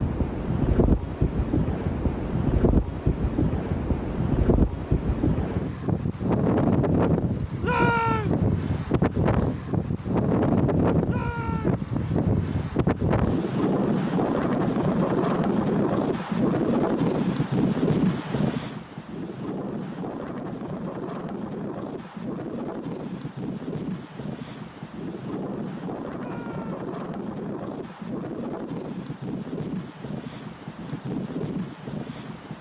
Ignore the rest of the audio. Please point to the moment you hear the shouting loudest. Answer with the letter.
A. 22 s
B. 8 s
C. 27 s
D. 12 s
B.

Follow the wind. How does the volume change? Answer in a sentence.
The volume of the wind goes down.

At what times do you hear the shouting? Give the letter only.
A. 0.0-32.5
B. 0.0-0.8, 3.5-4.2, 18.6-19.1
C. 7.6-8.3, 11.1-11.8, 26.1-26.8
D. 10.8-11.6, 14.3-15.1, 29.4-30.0
C.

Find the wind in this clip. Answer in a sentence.
You can hear the wind from 0.0 to 32.5 s.